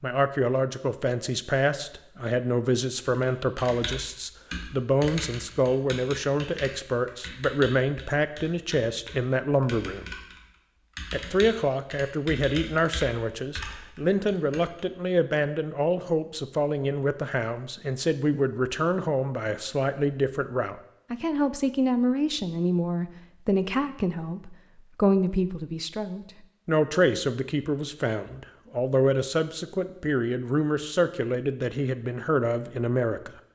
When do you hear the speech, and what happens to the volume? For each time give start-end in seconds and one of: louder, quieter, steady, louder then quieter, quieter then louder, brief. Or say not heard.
0.0-10.1 steady
11.1-33.3 steady.